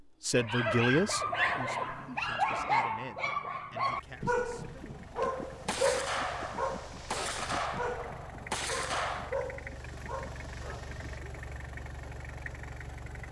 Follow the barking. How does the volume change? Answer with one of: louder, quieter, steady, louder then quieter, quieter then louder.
quieter.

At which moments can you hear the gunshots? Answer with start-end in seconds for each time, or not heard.
5.2-9.3.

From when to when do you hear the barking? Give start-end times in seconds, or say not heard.
0.3-11.3.